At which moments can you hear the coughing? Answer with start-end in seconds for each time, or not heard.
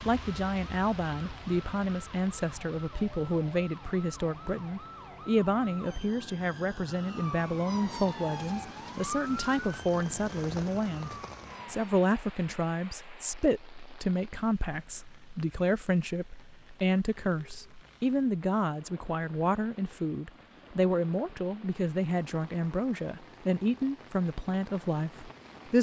not heard.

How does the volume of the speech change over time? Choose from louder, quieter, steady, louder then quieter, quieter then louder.
steady.